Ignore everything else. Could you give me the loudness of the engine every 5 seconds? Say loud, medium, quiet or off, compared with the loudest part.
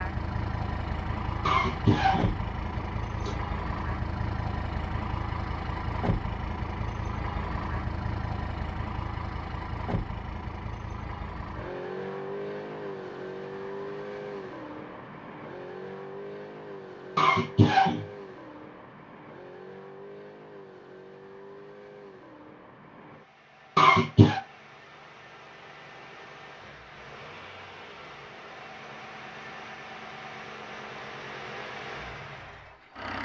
loud, loud, loud, medium, quiet, medium, medium.